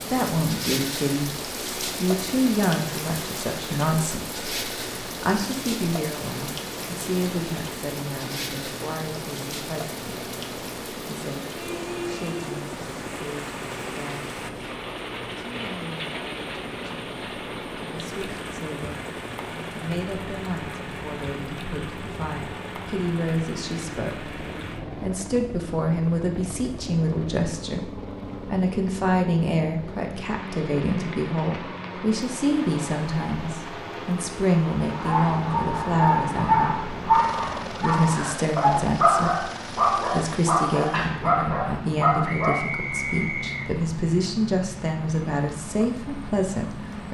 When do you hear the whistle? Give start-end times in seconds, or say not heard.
42.2-43.7.